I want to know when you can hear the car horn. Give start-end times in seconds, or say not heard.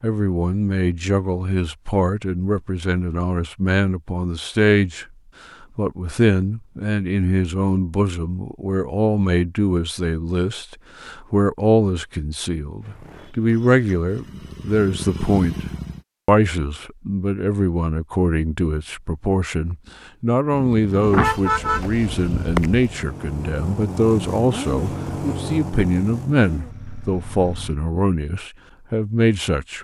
21.0-22.8.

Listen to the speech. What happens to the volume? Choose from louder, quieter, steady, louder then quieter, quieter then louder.
steady.